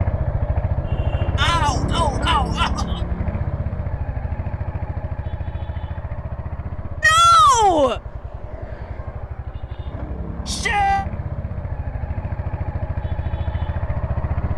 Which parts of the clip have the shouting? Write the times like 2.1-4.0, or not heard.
1.4-3.0, 7.0-8.0, 10.4-11.1.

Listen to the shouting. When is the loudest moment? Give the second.
7 s.